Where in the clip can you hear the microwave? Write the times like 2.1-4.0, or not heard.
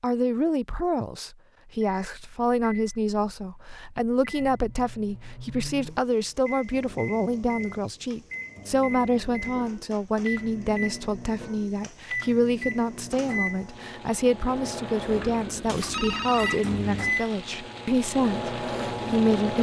1.9-19.5.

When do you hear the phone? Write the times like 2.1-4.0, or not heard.
15.7-16.6.